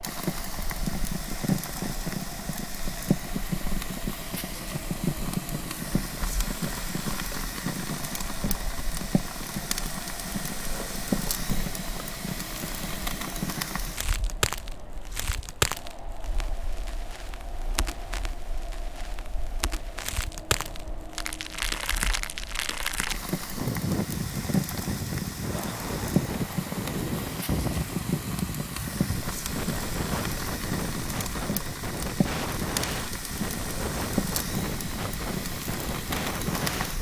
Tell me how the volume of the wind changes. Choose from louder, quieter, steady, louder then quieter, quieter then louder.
louder.